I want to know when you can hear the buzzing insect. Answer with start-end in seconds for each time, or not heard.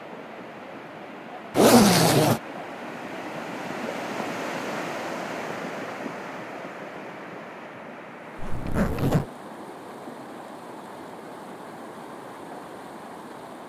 not heard.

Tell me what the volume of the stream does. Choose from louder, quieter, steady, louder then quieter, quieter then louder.
louder then quieter.